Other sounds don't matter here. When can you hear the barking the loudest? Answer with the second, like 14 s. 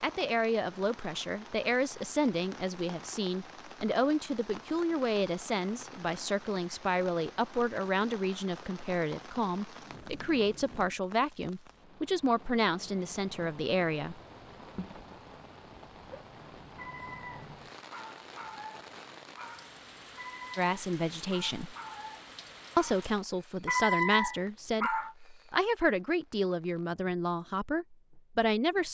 24 s.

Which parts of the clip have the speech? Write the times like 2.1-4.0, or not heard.
0.0-14.2, 20.6-21.8, 22.8-28.8.